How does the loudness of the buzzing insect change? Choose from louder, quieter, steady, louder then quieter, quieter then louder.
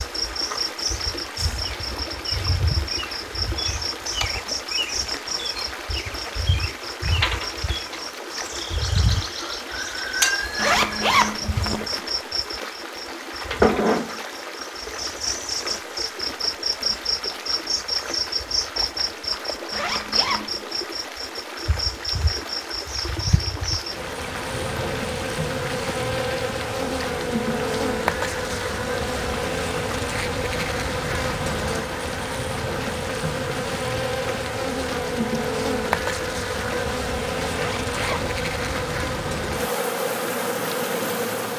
steady.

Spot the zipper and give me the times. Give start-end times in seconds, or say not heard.
10.6-11.8, 19.7-20.6, 37.5-38.2.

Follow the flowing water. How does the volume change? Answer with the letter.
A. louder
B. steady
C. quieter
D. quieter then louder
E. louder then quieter
B.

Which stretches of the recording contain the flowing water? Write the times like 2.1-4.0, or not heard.
0.0-41.5.